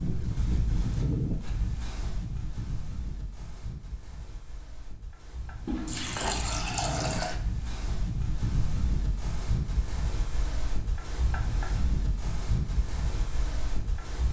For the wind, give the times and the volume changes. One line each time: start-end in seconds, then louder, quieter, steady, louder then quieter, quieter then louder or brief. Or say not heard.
0.0-14.2 quieter then louder.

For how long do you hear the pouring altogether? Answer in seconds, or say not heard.
2 s.